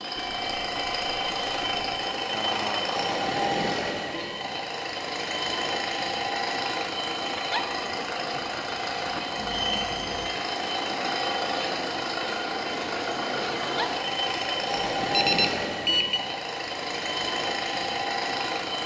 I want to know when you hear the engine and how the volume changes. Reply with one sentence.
The engine can be heard from 0.0 to 18.8 s, at a steady volume.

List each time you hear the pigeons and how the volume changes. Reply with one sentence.
You can't hear the pigeons here.